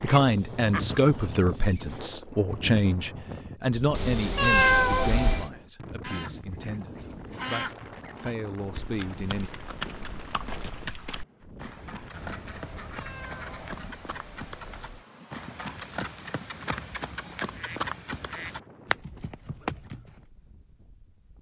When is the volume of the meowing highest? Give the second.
5 s.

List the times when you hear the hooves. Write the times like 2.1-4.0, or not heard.
8.6-20.2.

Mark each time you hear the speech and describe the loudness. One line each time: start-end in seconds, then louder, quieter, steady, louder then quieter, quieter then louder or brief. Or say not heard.
0.0-9.5 quieter then louder.